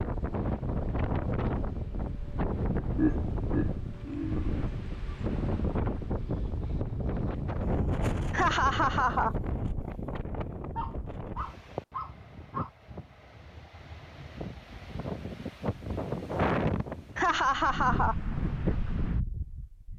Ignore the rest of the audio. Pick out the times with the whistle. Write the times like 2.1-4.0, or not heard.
not heard.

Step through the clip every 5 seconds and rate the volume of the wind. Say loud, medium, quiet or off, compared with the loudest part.
loud, loud, medium, loud.